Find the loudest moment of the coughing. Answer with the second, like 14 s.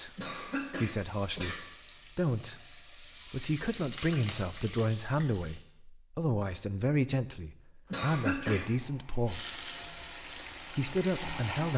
8 s.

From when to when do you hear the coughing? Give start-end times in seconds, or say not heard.
0.1-1.6, 7.9-8.7.